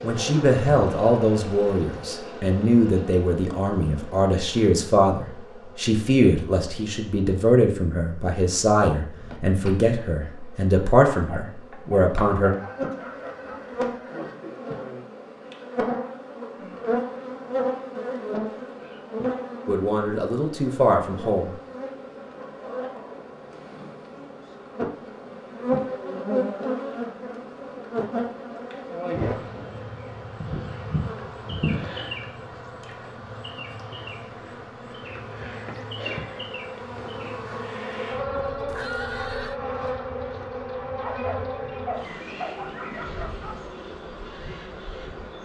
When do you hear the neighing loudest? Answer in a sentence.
The loudest moment of the neighing is at 39 seconds.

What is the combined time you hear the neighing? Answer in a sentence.
The neighing can be heard for 3 seconds in total.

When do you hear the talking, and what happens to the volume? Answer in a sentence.
You can hear the talking from 0.0 to 12.5 s, at a steady volume; and briefly from 19.6 to 21.6 s.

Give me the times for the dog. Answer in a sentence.
The dog can be heard from 11.1 to 13.6 s and from 41.0 to 43.7 s.